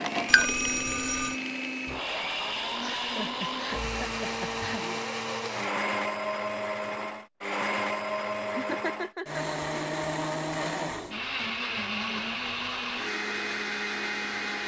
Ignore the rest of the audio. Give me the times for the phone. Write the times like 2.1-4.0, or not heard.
0.2-1.4.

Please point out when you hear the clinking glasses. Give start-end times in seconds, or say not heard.
not heard.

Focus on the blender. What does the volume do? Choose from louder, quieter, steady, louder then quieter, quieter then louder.
steady.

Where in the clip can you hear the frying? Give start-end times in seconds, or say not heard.
not heard.